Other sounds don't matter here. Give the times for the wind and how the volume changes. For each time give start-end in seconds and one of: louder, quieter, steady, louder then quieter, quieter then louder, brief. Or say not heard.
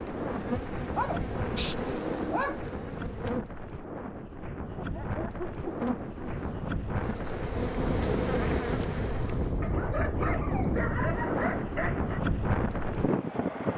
0.0-13.7 louder.